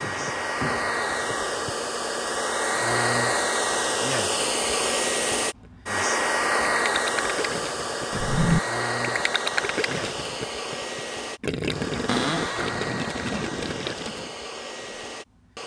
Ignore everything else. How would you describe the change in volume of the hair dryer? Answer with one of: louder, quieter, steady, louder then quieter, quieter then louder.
quieter.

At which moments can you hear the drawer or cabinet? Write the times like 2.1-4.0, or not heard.
0.0-1.7, 8.1-8.6, 12.1-12.8.